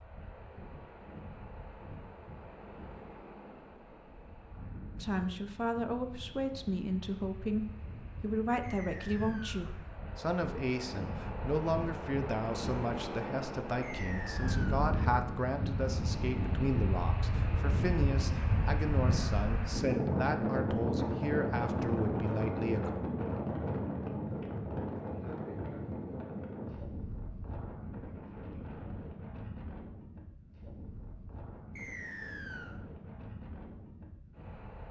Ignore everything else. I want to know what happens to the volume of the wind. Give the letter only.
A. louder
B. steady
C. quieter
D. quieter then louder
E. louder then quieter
E.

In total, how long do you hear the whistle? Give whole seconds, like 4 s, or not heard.
3 s.